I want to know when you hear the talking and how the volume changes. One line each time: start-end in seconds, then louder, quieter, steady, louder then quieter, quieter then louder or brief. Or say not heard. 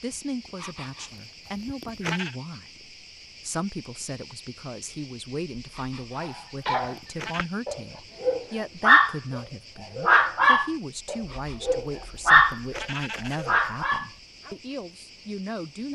0.0-15.9 steady.